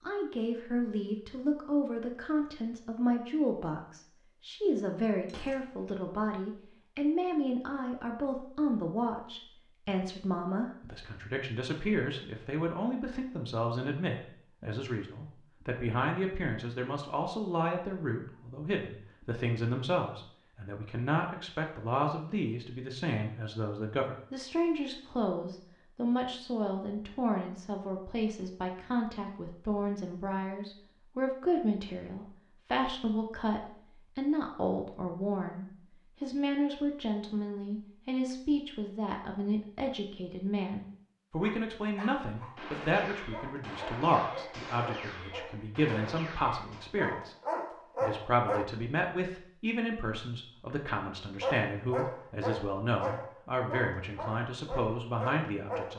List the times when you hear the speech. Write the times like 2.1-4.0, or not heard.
0.0-47.4, 48.0-55.9.